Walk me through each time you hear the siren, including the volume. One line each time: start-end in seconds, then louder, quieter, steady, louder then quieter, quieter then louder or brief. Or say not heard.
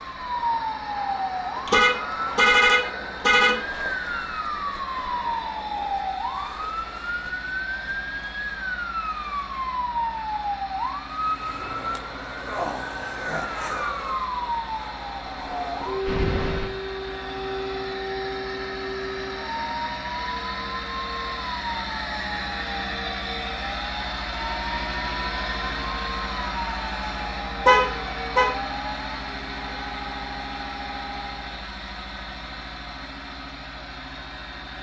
0.0-31.6 quieter.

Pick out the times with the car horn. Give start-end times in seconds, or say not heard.
1.6-3.5, 16.1-16.7, 27.6-28.5.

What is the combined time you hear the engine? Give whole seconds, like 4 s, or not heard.
35 s.